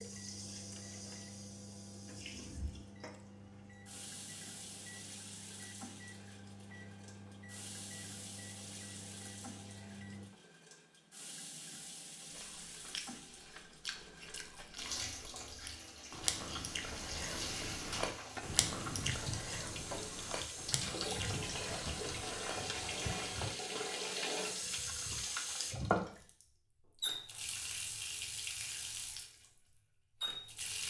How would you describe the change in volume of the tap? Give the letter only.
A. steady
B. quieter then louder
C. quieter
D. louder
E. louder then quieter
D.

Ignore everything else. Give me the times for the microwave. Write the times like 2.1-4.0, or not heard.
0.0-10.3.